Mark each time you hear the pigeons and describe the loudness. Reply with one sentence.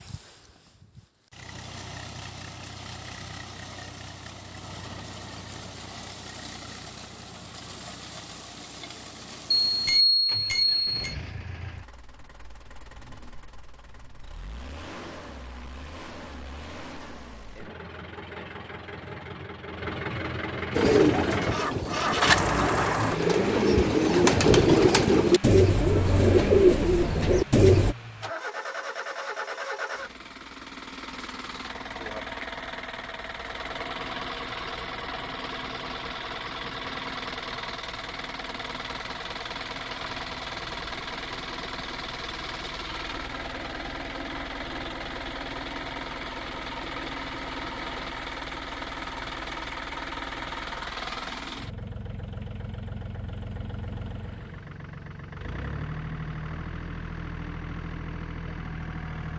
You can hear the pigeons from 20.7 to 27.9 s, getting louder.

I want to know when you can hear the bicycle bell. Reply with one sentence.
The bicycle bell can be heard from 9.7 to 11.2 s.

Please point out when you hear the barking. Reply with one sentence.
The barking can't be heard in this clip.